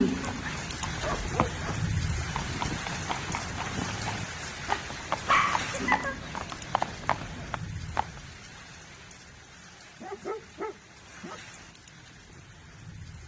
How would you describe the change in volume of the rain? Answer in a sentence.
The loudness of the rain goes down.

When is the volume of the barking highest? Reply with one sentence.
The loudest moment of the barking is at 5 seconds.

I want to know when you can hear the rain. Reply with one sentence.
You can hear the rain from 0.0 to 13.2 s.